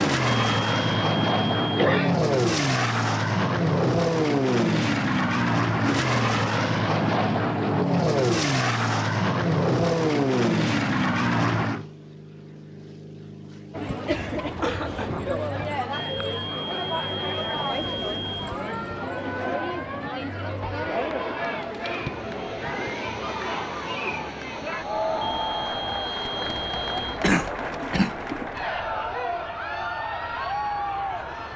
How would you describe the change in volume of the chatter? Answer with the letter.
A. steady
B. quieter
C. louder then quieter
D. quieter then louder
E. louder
A.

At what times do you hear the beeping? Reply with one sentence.
The beeping can be heard from 0.2 to 1.8 s, from 15.9 to 18.6 s and from 25.2 to 27.2 s.